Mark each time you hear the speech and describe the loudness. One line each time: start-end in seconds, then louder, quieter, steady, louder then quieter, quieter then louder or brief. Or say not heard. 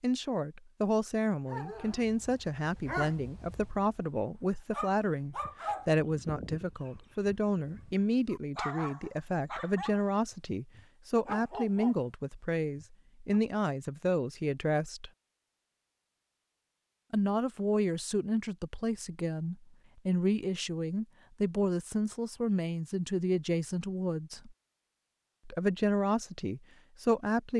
0.0-15.1 steady
17.1-24.6 steady
25.4-27.5 brief.